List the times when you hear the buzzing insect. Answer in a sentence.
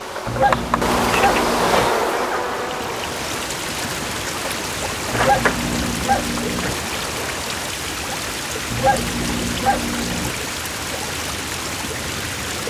You can hear the buzzing insect from 0.0 to 7.7 s.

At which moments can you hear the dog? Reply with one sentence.
The dog can be heard from 0.2 to 1.9 s, from 5.1 to 6.8 s and from 8.7 to 10.3 s.